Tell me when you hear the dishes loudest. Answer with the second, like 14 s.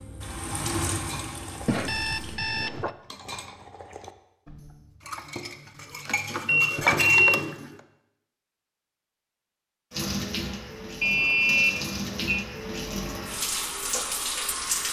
7 s.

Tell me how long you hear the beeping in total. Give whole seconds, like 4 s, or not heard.
4 s.